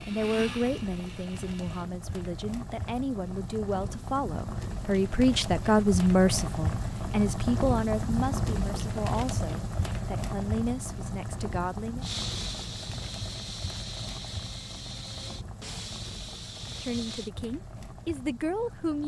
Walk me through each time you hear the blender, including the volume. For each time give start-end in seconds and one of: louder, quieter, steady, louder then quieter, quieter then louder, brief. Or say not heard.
0.0-1.9 brief
12.0-17.3 steady.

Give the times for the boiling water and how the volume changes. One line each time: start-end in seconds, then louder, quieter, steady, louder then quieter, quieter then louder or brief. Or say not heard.
0.0-19.0 louder then quieter.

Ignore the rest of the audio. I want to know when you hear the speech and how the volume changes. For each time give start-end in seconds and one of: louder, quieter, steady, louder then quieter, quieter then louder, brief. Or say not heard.
0.1-12.1 louder then quieter
16.8-19.0 brief.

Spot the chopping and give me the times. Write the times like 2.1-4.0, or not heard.
not heard.